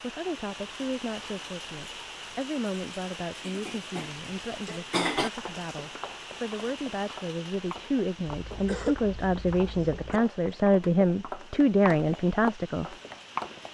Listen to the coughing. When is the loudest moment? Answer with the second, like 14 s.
5 s.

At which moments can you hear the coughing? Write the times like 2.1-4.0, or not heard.
3.4-5.3, 8.2-10.2.